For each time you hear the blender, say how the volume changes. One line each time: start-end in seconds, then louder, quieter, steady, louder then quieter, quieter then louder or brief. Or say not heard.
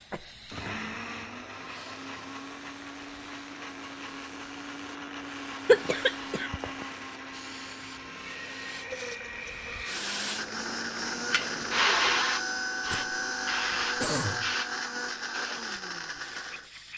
0.3-16.7 louder.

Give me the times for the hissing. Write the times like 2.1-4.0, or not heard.
0.0-16.9.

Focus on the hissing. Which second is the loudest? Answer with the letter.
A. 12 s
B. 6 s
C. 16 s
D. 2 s
A.